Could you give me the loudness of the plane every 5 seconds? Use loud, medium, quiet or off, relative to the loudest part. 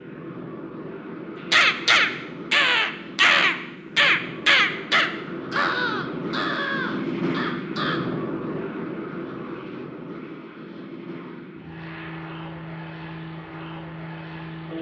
medium, loud, medium.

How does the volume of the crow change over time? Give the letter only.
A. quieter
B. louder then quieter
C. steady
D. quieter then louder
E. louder
A.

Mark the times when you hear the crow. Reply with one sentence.
You can hear the crow from 1.5 to 8.0 s.